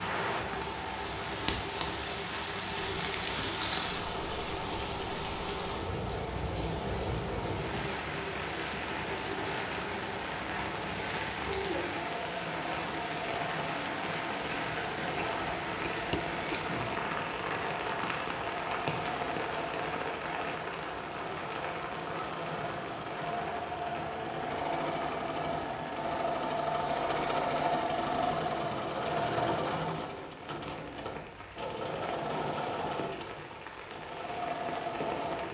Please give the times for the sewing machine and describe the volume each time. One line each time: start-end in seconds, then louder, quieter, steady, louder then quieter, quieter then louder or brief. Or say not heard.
0.1-35.4 louder.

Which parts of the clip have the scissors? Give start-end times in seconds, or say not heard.
14.4-16.7.